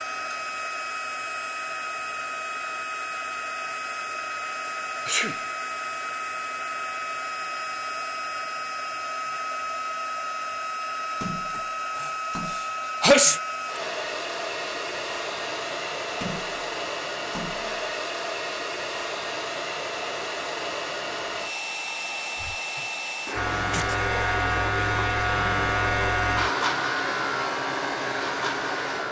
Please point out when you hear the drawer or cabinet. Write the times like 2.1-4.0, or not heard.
not heard.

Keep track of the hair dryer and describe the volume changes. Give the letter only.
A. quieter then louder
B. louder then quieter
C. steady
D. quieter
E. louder
C.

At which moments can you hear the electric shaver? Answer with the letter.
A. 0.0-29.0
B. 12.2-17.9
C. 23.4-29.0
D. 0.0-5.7
C.